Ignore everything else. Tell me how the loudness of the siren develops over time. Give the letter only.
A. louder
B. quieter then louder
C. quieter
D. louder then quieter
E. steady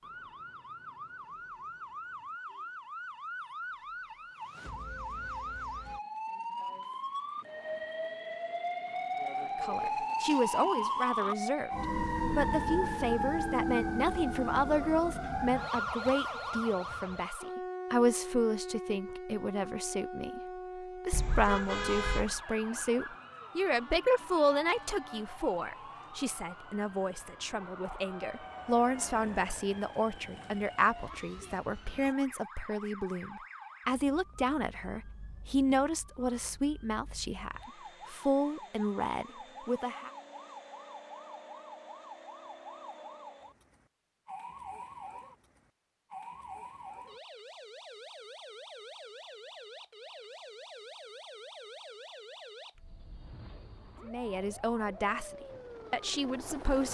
C.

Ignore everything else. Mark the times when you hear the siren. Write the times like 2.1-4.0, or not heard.
0.0-56.8.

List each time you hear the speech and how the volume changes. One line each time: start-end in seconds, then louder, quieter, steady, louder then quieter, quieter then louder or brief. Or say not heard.
9.6-11.7 brief
12.3-40.1 steady
54.0-56.8 brief.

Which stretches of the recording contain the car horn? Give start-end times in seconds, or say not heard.
21.1-22.4.